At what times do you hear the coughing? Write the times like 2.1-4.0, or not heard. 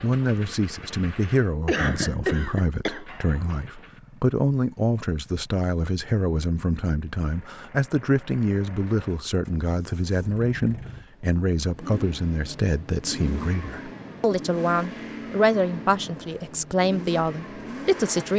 1.6-3.0.